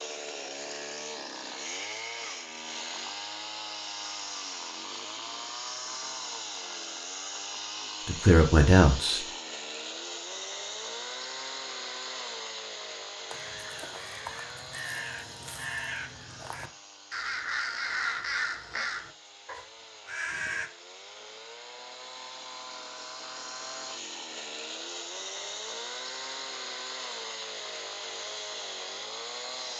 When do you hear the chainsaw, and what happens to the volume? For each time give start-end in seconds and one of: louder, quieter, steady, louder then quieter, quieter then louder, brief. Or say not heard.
0.0-29.7 quieter then louder.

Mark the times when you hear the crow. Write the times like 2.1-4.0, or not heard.
13.2-20.7.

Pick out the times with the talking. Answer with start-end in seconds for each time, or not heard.
8.1-9.2.